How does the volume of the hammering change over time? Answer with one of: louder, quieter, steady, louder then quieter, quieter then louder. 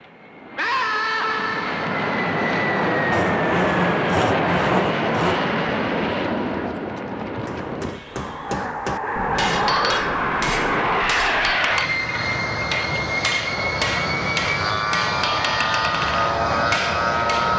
steady.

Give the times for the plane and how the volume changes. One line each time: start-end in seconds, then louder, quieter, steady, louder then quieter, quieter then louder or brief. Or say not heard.
0.0-17.5 steady.